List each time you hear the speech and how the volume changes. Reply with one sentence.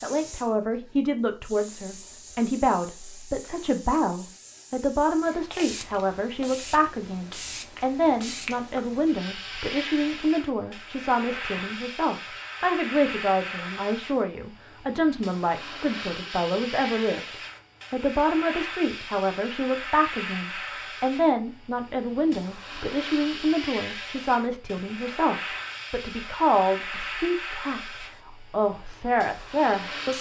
You can hear the speech from 0.0 to 30.1 s, at a steady volume.